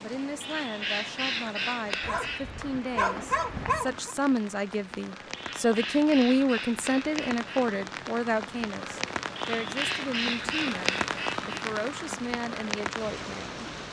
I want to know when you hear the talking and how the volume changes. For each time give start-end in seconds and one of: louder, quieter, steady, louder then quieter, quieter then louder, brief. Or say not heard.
0.0-13.7 louder then quieter.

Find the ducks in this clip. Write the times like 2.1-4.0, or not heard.
0.4-2.6, 5.3-7.7, 9.3-11.7.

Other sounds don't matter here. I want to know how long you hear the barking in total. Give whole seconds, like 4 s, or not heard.
2 s.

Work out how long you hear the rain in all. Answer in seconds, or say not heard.
14 s.